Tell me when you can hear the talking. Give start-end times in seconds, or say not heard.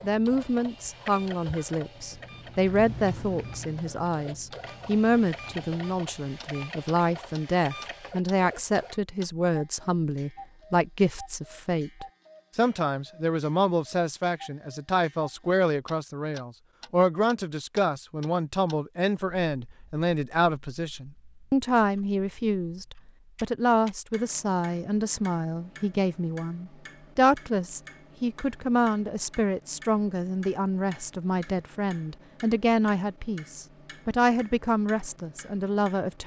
0.0-36.2.